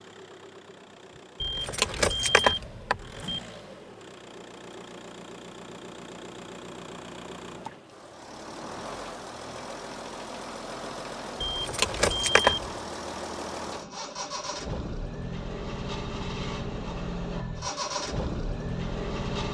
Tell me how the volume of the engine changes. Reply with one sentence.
The loudness of the engine goes up.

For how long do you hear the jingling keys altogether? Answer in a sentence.
The jingling keys can be heard for 3 seconds in total.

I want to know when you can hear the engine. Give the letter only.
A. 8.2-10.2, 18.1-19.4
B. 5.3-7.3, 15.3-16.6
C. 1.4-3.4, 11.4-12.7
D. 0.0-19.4
D.